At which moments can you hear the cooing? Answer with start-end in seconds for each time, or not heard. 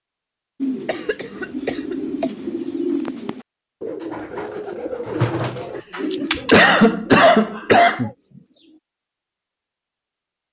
0.6-8.8.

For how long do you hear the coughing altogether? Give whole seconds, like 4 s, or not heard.
4 s.